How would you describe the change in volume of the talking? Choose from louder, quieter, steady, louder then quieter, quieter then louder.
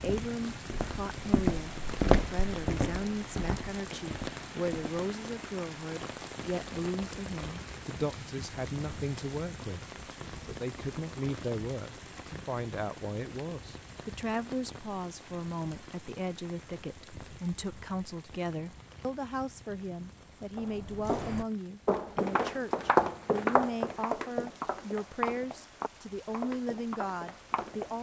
steady.